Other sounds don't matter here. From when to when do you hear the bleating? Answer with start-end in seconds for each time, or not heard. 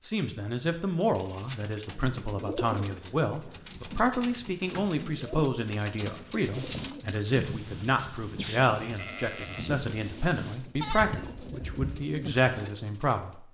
6.5-12.7.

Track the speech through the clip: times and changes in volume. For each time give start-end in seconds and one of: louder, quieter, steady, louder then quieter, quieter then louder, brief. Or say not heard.
0.0-13.3 steady.